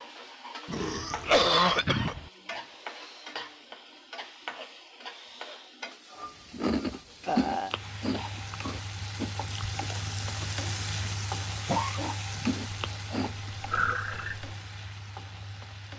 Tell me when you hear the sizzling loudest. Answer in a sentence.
The loudest moment of the sizzling is at 11 seconds.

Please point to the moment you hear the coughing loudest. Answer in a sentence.
The loudest moment of the coughing is at 1 second.